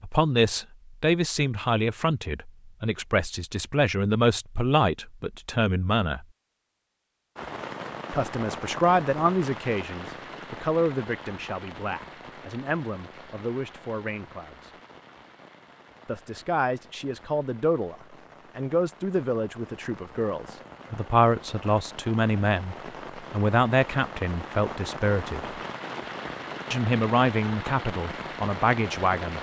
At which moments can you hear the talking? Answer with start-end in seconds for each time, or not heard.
0.0-6.2, 8.1-14.7, 16.1-17.9, 18.6-25.5, 26.7-29.3.